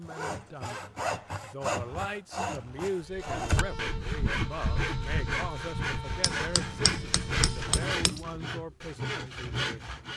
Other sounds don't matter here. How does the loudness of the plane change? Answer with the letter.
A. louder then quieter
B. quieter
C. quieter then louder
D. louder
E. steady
B.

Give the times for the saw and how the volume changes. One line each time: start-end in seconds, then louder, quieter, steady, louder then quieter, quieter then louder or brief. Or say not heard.
0.0-10.1 steady.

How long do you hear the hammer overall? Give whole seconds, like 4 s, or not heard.
2 s.